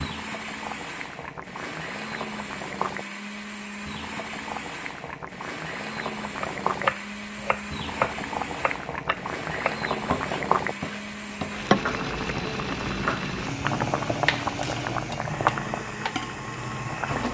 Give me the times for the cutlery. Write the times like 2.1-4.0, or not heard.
not heard.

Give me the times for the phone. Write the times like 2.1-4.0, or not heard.
not heard.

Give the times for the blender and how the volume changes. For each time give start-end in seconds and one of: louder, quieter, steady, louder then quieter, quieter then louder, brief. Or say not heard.
0.0-17.2 steady.